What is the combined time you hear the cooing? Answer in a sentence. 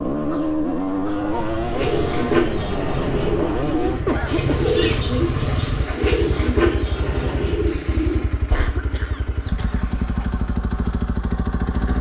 You can hear the cooing for 7 seconds altogether.